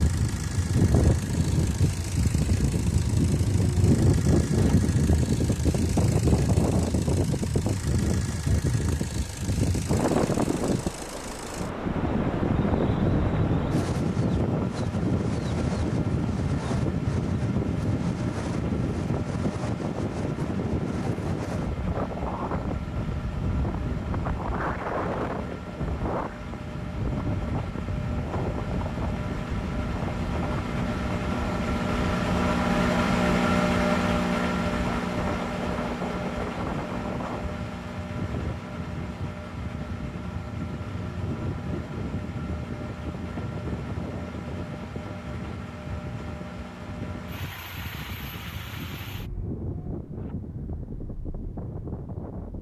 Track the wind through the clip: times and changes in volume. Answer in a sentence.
The wind can be heard from 0.0 to 52.5 s, getting quieter.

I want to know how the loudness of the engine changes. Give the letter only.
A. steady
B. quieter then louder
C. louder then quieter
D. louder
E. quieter
C.